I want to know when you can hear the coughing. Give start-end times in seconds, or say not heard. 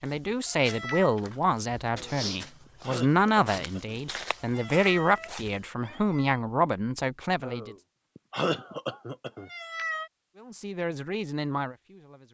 1.9-4.0, 7.4-9.5.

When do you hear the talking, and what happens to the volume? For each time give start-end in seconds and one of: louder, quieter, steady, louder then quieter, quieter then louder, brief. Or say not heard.
0.0-7.8 steady
10.3-12.2 brief.